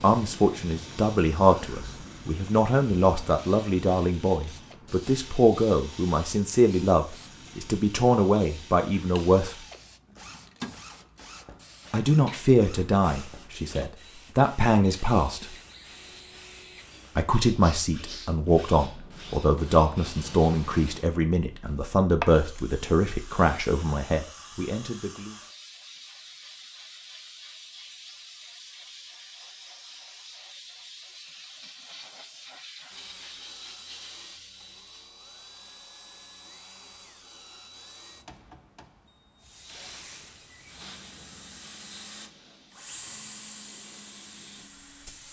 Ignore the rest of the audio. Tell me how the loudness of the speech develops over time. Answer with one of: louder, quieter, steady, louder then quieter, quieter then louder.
steady.